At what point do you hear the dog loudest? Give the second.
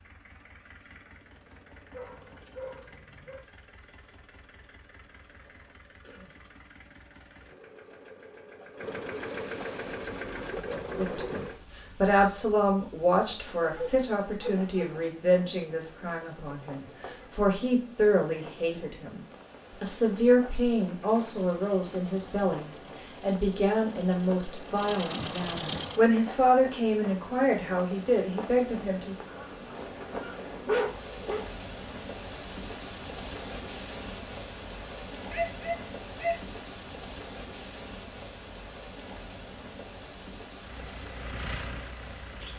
31 s.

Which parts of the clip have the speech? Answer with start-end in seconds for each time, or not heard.
10.9-29.2.